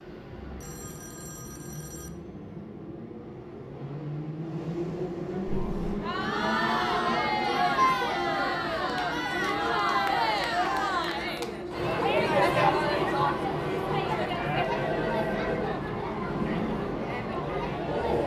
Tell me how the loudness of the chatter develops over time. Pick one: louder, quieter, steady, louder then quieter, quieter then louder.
quieter.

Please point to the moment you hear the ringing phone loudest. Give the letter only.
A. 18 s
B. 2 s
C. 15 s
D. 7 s
C.